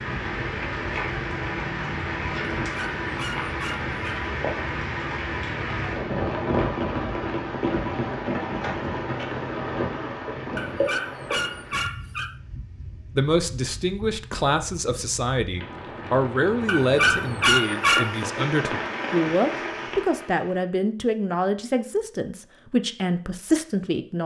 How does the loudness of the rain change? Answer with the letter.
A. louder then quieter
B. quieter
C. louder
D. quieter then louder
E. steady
D.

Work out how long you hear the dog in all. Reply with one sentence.
The dog can be heard for 5 seconds in total.